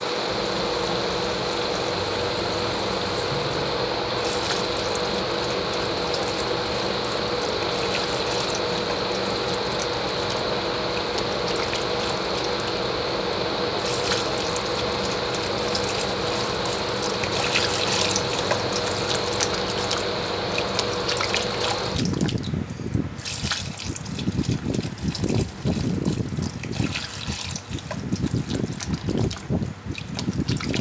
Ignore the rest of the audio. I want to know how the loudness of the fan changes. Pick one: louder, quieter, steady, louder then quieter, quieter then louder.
steady.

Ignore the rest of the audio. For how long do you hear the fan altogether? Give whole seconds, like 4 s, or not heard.
31 s.